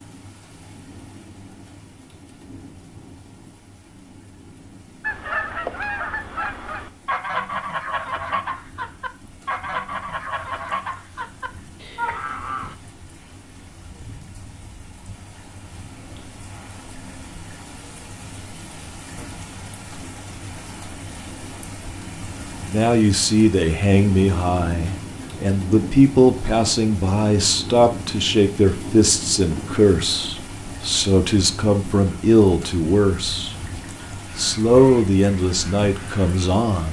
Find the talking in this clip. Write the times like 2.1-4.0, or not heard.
22.6-33.5, 34.4-36.8.